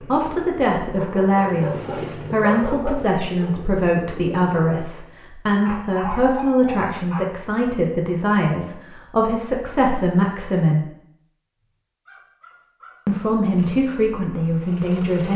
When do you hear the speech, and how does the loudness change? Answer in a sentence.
You can hear the speech from 0.0 to 10.8 s, at a steady volume; and briefly from 13.1 to 15.3 s.